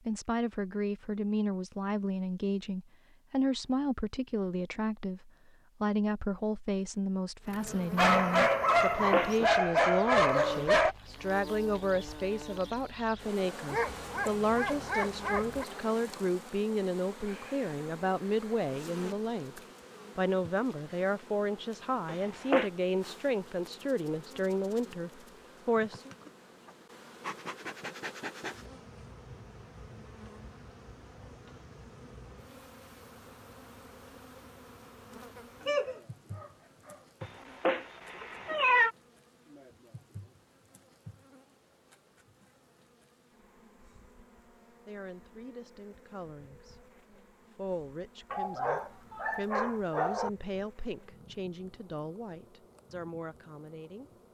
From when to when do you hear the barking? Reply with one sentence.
You can hear the barking from 8.0 to 10.9 s, from 13.7 to 15.7 s, from 35.6 to 37.0 s and from 48.3 to 50.3 s.